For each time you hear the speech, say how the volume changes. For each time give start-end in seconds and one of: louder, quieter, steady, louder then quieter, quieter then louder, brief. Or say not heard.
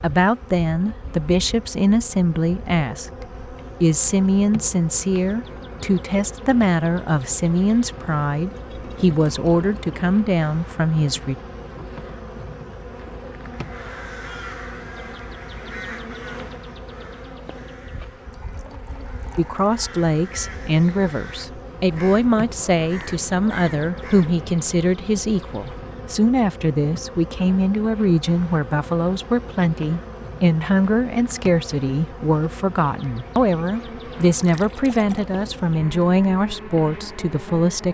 0.0-11.3 steady
19.4-37.8 steady.